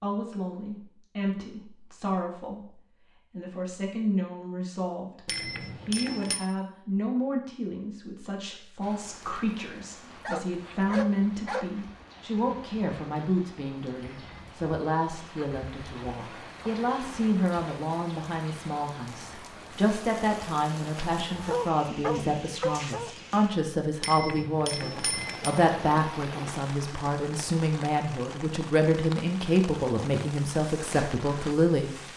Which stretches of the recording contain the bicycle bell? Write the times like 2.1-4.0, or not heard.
5.2-6.4, 14.0-14.6, 24.0-25.6.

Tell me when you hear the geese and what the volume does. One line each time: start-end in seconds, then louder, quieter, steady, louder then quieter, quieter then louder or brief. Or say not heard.
not heard.